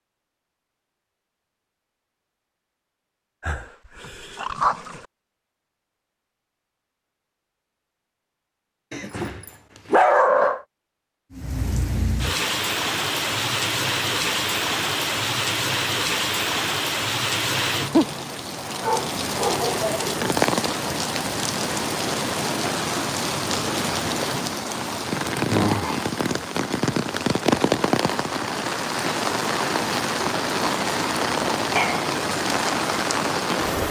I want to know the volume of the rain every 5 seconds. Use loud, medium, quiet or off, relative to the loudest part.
off, off, loud, loud, loud, loud, loud.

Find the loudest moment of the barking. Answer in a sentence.
The volume of the barking peaks at 10 seconds.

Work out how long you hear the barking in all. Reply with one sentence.
The barking can be heard for 5 seconds in total.